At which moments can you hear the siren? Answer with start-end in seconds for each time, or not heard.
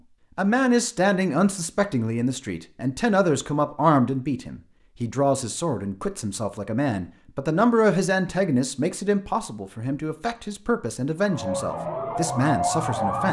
11.2-13.2.